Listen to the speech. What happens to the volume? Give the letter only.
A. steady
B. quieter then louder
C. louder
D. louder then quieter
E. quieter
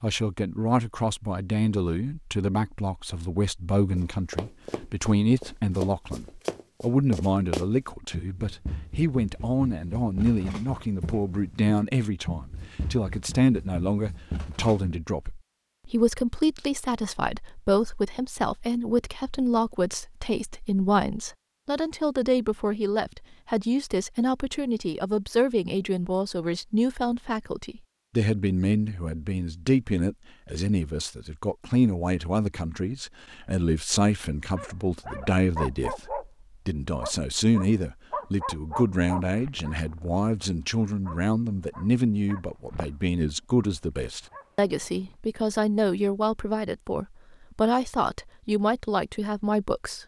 A.